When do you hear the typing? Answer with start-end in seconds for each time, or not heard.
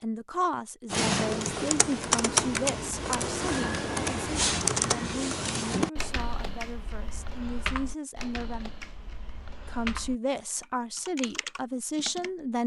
0.9-12.3.